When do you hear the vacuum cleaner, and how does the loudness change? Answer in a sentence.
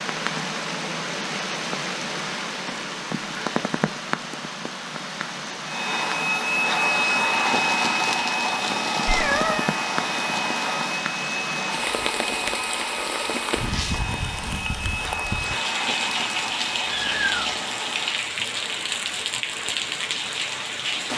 You can hear the vacuum cleaner from 5.7 to 18.3 s, getting quieter.